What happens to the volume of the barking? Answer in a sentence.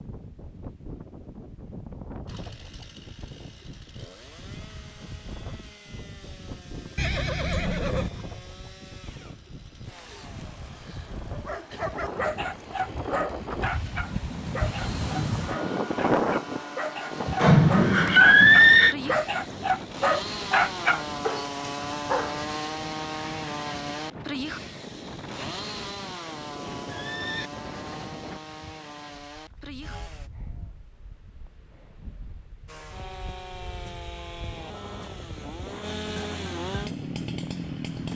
The volume of the barking goes up.